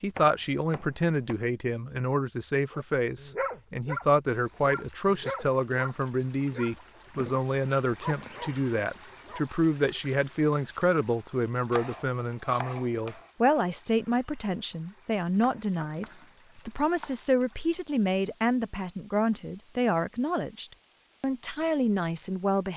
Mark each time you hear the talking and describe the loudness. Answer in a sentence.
The talking can be heard from 0.0 to 22.7 s, at a steady volume.